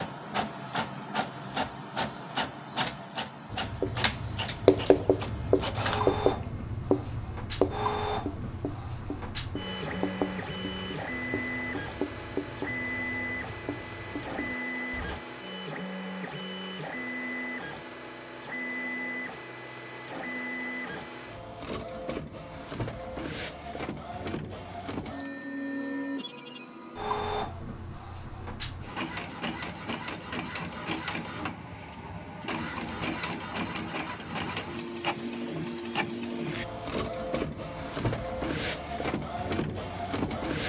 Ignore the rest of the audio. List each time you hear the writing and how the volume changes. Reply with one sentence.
The writing can be heard from 3.5 to 15.2 s, getting quieter.